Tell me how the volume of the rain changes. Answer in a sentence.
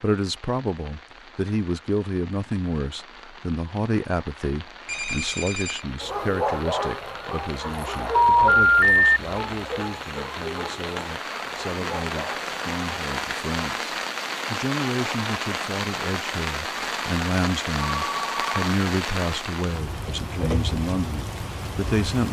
The loudness of the rain goes up.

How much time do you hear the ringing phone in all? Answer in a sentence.
You can hear the ringing phone for 3 seconds altogether.